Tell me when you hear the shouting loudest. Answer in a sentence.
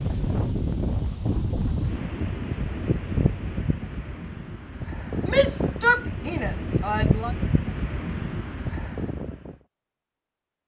The volume of the shouting peaks at 6 seconds.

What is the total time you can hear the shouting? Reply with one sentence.
The shouting can be heard for 2 seconds in total.